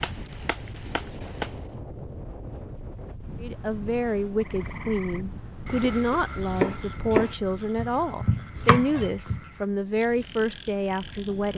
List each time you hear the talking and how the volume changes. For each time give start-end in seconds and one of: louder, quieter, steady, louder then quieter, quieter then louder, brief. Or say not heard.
3.4-11.5 steady.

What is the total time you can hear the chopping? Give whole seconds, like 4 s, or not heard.
5 s.